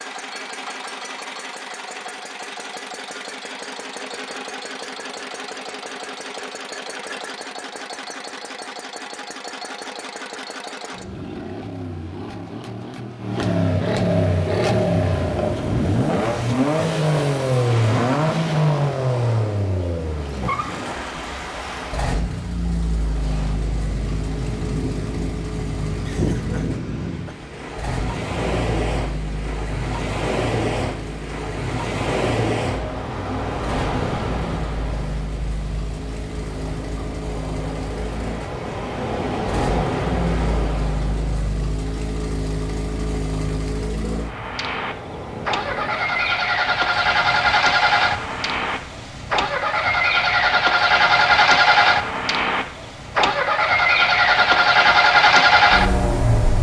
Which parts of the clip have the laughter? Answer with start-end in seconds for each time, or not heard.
26.1-27.4.